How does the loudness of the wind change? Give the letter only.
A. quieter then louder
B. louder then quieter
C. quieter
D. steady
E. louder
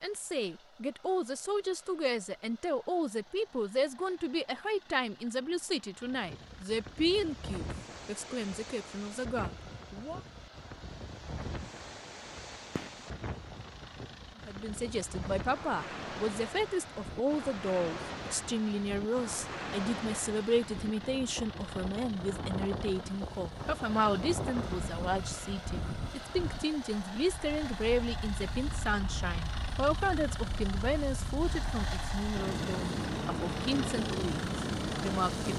E.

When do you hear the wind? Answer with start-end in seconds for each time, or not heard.
6.0-35.5.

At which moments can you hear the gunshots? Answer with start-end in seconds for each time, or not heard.
12.8-13.2.